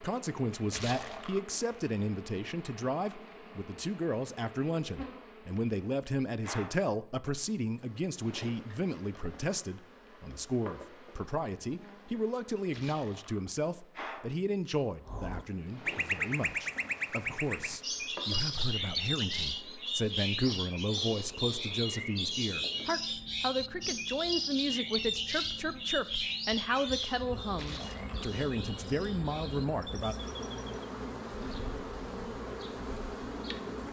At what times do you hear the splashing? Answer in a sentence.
The splashing can be heard from 0.7 to 1.4 s, from 12.7 to 13.4 s and from 27.6 to 28.3 s.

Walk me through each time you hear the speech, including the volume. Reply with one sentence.
You can hear the speech from 0.0 to 30.1 s, at a steady volume.